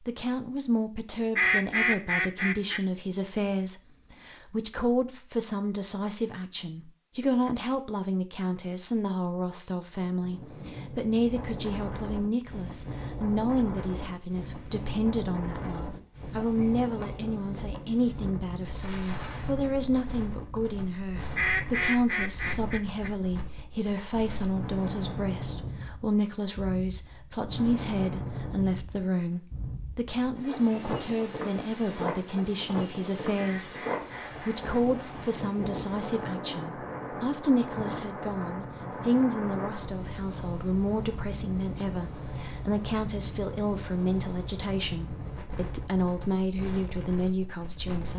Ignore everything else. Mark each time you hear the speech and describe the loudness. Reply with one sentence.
The speech can be heard from 0.1 to 48.1 s, at a steady volume.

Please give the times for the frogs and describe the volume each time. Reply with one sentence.
You can't hear the frogs here.